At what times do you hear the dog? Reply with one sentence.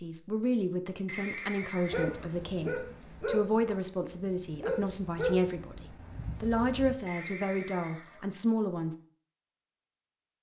You can hear the dog from 1.9 to 7.0 s.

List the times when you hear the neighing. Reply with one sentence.
The neighing can be heard from 1.1 to 2.4 s and from 7.0 to 8.2 s.